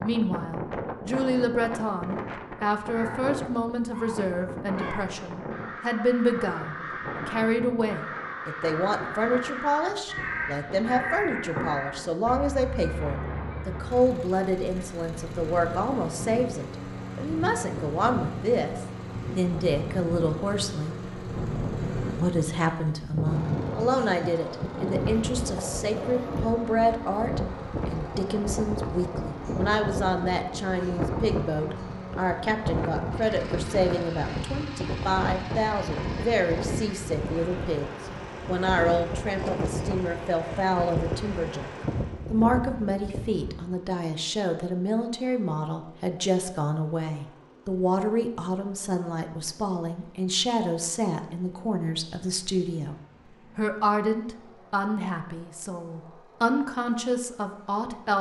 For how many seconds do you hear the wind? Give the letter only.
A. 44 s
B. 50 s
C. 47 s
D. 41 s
A.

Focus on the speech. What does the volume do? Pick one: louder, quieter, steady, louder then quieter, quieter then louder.
steady.